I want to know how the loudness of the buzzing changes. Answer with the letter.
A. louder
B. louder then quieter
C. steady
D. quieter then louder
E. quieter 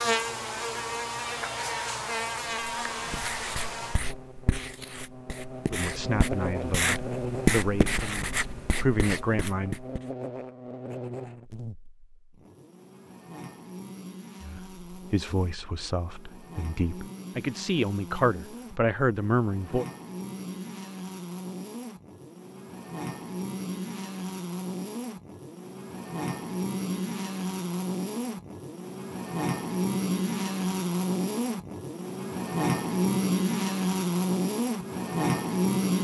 D.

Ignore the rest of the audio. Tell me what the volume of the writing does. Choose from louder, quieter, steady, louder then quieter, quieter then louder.
louder then quieter.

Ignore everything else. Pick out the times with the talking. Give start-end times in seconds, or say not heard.
5.7-9.8, 14.4-19.9.